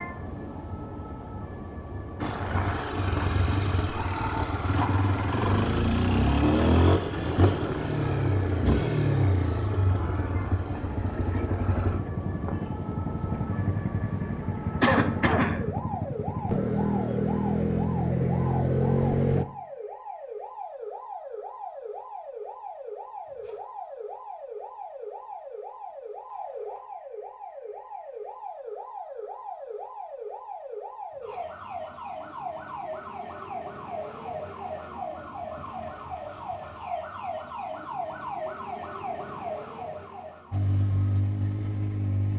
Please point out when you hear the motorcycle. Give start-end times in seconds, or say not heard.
2.2-19.4, 40.5-42.3.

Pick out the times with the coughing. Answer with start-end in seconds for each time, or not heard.
14.8-15.7.